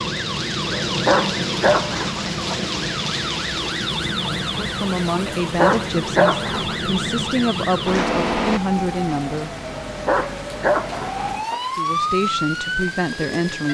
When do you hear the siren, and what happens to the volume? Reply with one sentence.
You can hear the siren from 0.0 to 13.7 s, at a steady volume.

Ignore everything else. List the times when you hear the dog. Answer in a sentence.
The dog can be heard from 0.7 to 2.6 s, from 5.2 to 6.8 s and from 9.8 to 11.7 s.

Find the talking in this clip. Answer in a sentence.
The talking can be heard from 4.6 to 9.5 s and from 11.8 to 13.7 s.